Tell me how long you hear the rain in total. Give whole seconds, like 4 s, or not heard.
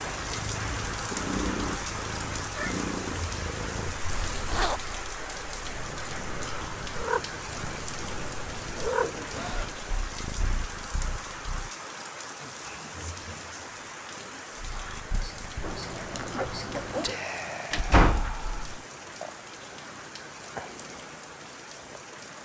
22 s.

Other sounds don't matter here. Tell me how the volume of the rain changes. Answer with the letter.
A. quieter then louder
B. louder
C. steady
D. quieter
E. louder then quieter
D.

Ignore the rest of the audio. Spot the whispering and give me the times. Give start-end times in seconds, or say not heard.
12.4-18.7.